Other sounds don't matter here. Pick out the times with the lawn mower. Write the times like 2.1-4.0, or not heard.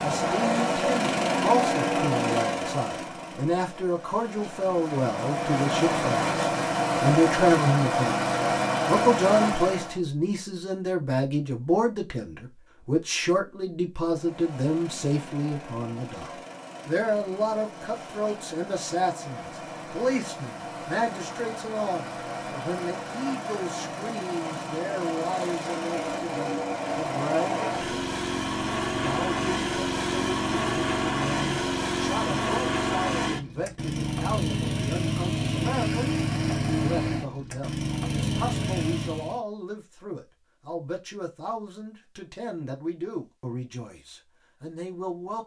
0.0-10.0, 14.1-39.4.